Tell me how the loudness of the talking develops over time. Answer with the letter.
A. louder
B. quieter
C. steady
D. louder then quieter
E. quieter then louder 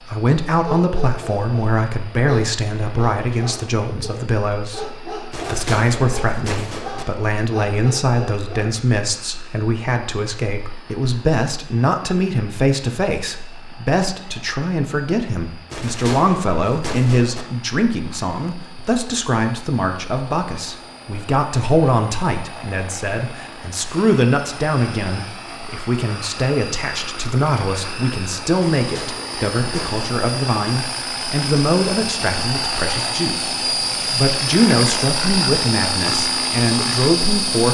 C.